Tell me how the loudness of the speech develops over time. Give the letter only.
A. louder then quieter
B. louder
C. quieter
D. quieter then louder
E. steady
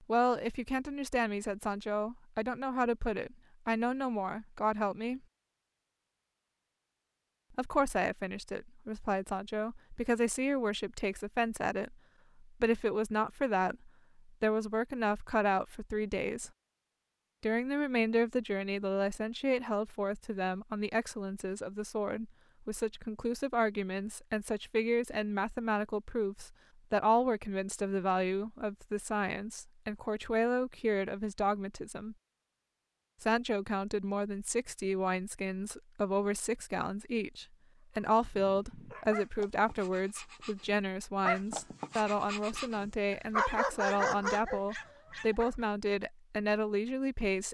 E.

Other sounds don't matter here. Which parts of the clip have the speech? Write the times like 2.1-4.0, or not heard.
0.1-5.2, 7.5-16.5, 17.4-32.1, 33.2-47.4.